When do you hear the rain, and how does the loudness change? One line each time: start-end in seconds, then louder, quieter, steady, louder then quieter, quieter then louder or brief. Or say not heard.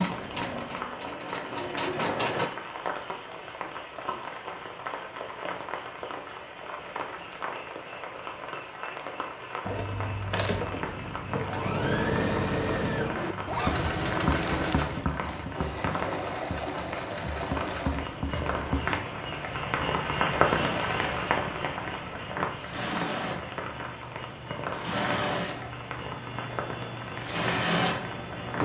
0.0-28.6 louder then quieter.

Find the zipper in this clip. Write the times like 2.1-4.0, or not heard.
13.4-15.1.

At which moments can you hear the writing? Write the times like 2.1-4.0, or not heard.
13.2-19.0.